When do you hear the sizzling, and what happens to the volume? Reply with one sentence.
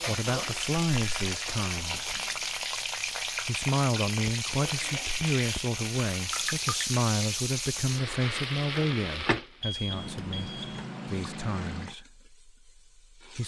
You can hear the sizzling from 0.0 to 13.4 s, getting quieter.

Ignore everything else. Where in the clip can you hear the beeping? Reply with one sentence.
The beeping can be heard from 9.6 to 10.8 s.